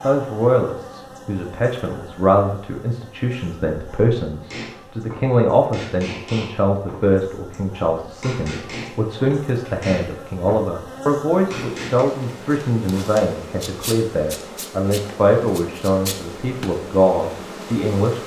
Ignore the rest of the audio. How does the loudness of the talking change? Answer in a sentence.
The volume of the talking stays about the same.